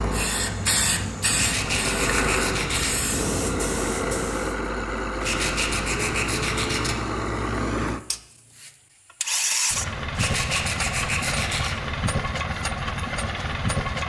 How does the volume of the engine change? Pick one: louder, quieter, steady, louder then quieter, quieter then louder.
steady.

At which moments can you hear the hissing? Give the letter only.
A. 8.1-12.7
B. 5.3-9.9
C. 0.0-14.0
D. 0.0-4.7
D.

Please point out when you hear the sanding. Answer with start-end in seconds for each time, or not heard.
1.3-3.0, 5.2-7.0, 10.2-11.8.